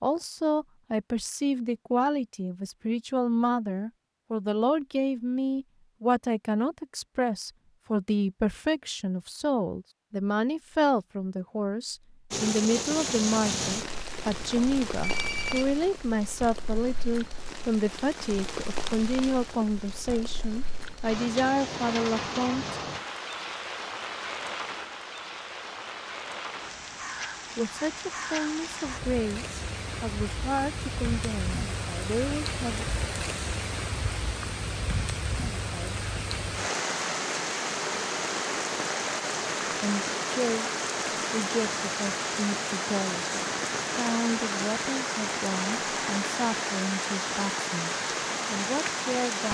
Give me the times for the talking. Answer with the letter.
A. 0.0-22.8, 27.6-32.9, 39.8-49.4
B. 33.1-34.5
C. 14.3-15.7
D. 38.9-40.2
A.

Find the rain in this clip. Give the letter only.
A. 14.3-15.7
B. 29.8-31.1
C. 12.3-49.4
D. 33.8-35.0
C.